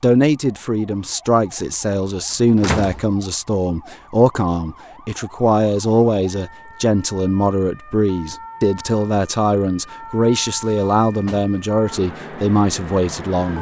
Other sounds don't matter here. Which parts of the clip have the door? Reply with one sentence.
The door can be heard from 2.3 to 3.0 s and from 10.7 to 11.6 s.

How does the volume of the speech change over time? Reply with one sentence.
The loudness of the speech stays about the same.